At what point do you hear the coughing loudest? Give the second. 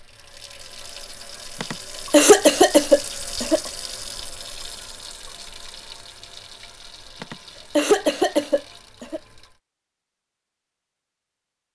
2 s.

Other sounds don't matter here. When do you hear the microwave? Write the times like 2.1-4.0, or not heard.
not heard.